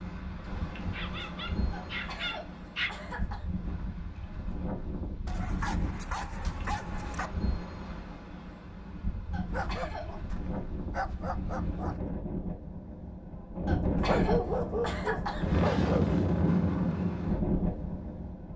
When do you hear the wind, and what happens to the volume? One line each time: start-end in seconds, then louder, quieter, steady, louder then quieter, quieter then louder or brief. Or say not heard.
0.0-18.5 louder.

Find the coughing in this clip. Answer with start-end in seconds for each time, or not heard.
1.7-3.5, 9.3-10.2, 13.7-15.4.